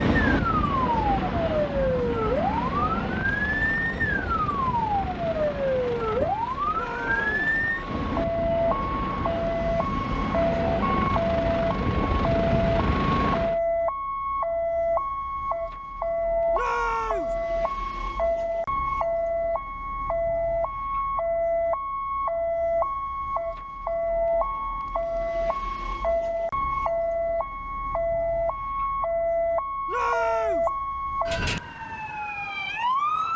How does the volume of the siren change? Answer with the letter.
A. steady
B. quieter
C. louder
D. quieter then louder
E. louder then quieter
A.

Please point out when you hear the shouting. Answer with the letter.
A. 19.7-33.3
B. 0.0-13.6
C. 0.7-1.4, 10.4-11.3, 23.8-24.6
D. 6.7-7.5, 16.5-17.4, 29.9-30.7
D.